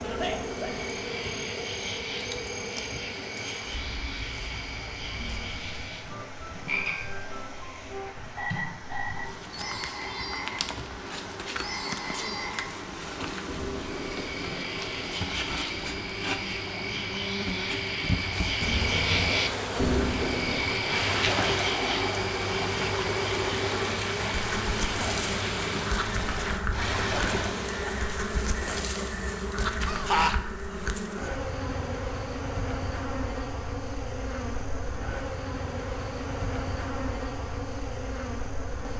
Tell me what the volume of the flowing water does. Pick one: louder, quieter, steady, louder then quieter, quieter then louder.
louder.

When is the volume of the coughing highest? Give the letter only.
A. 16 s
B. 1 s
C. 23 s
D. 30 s
D.